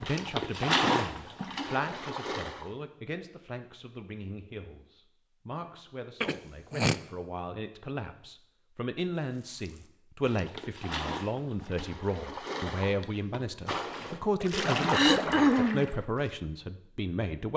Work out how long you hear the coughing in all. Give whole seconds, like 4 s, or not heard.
2 s.